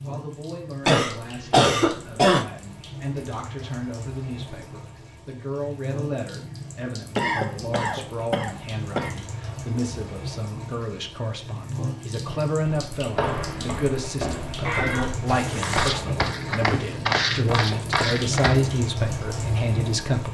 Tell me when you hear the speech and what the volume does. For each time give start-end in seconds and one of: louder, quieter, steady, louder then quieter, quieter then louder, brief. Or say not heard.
0.0-20.2 louder.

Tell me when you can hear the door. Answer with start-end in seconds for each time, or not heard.
not heard.